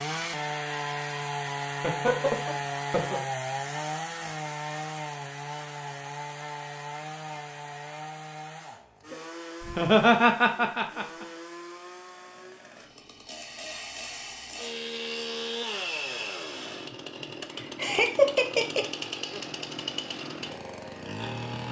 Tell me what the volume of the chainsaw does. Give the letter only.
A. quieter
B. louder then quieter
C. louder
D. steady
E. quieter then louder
E.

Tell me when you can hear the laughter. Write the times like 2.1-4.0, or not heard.
1.7-3.2, 9.6-11.2, 17.6-18.9.